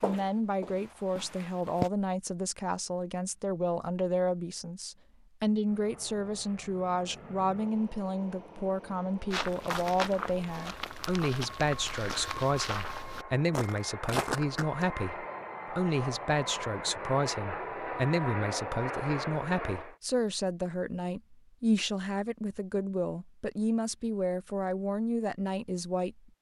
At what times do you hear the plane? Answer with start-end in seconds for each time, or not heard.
5.7-19.9.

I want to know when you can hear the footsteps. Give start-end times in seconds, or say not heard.
0.0-1.9, 9.3-14.8.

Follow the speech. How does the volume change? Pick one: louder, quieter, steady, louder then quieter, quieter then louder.
steady.